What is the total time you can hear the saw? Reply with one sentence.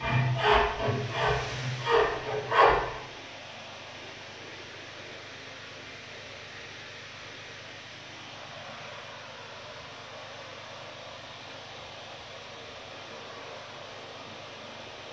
You can hear the saw for 3 seconds altogether.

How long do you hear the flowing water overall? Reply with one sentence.
You can hear the flowing water for 15 seconds altogether.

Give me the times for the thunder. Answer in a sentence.
You can't hear the thunder here.